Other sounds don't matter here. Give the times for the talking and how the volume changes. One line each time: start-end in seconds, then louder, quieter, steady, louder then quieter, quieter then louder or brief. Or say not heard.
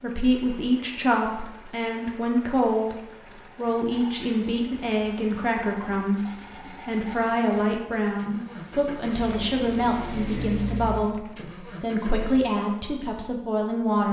0.0-3.0 brief
3.5-14.0 steady.